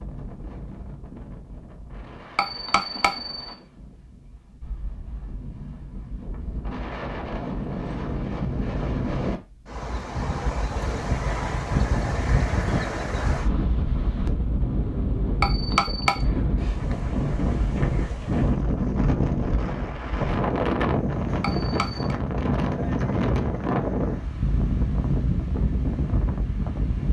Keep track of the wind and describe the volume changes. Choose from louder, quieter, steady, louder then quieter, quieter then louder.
louder.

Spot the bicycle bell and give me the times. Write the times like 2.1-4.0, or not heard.
2.4-3.5, 15.4-16.2, 21.4-22.1.